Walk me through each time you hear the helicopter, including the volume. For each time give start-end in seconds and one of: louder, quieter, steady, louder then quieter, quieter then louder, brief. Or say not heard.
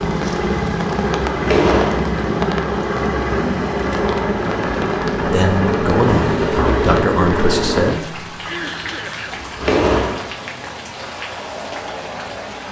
0.0-8.0 steady.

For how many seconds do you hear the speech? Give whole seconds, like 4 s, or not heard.
3 s.